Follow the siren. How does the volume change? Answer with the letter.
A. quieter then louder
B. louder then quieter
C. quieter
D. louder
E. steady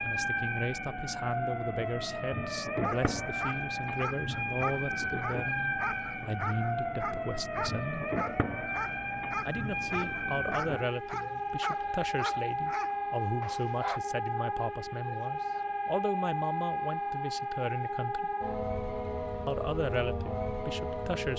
E.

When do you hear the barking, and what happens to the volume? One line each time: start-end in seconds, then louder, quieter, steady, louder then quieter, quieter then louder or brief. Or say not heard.
2.8-14.0 steady.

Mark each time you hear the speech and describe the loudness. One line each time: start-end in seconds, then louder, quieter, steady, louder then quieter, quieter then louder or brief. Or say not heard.
0.0-8.1 steady
9.4-18.3 steady
19.4-21.3 brief.